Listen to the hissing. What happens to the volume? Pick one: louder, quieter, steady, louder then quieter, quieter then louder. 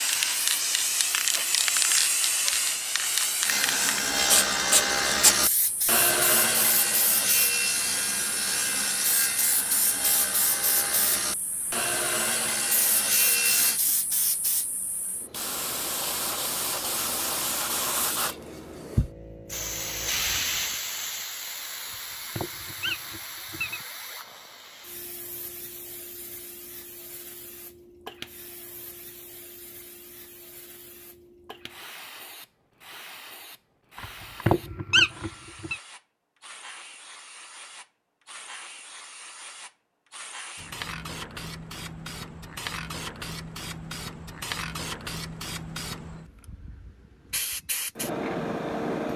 quieter then louder.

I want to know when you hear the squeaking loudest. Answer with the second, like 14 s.
35 s.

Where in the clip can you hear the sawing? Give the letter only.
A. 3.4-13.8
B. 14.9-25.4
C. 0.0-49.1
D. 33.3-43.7
A.